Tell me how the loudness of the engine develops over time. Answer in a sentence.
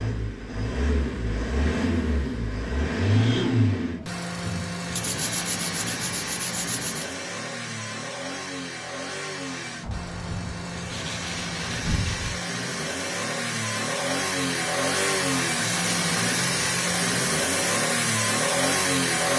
The loudness of the engine goes down, then up.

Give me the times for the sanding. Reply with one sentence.
You can hear the sanding from 5.0 to 7.2 s and from 9.8 to 12.4 s.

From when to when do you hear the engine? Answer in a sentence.
You can hear the engine from 0.0 to 19.3 s.